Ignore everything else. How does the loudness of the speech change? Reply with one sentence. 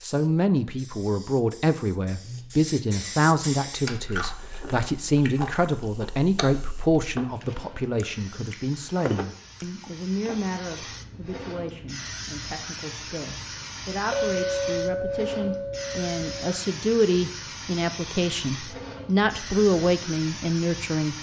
The volume of the speech goes down, then up.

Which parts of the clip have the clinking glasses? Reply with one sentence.
You can hear the clinking glasses from 2.2 to 3.3 s and from 14.1 to 16.3 s.